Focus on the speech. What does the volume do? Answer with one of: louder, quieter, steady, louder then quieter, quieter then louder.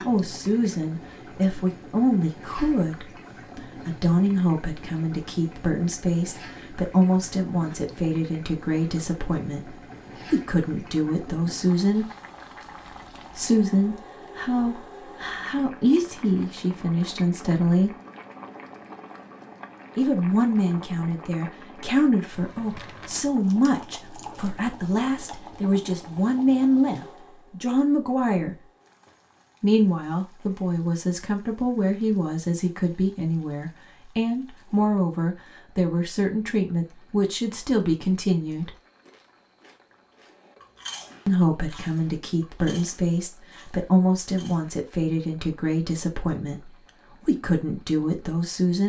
steady.